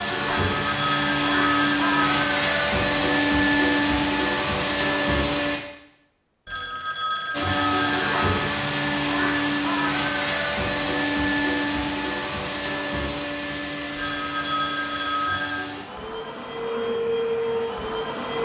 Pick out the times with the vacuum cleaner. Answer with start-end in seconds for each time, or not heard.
0.0-5.6, 7.3-18.4.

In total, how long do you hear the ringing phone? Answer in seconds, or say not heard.
6 s.